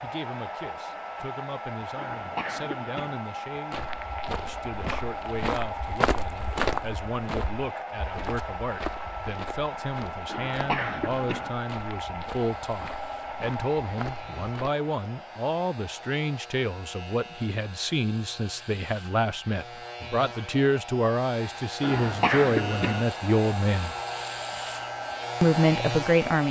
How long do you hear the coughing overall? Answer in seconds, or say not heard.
4 s.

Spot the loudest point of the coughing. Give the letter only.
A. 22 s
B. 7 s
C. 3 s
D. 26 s
A.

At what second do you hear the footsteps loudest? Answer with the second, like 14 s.
7 s.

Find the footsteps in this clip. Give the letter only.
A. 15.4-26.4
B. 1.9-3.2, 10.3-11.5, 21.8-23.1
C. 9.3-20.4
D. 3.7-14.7
D.